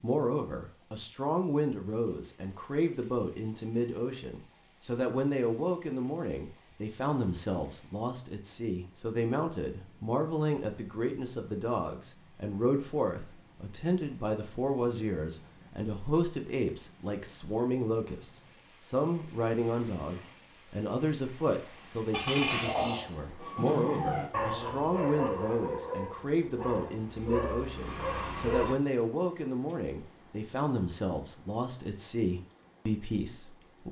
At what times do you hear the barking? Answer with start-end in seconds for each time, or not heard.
23.4-28.8.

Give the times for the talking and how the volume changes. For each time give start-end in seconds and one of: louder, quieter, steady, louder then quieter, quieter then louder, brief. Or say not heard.
0.0-33.8 steady.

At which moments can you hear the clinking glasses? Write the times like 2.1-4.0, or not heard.
22.1-23.9.